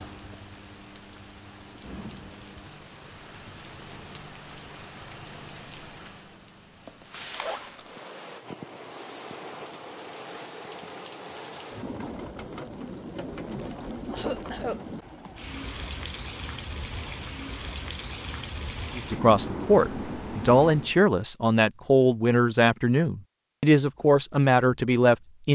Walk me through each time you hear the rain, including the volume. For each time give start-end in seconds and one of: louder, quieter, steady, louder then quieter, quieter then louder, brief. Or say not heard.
0.0-20.9 louder.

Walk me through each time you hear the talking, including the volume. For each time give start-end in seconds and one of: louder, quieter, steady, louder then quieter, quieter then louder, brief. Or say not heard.
18.9-25.5 steady.